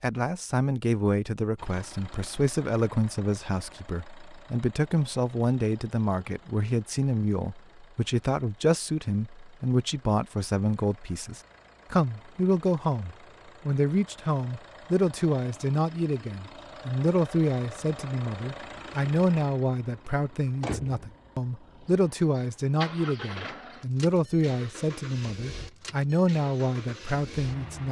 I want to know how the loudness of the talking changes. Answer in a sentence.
The loudness of the talking stays about the same.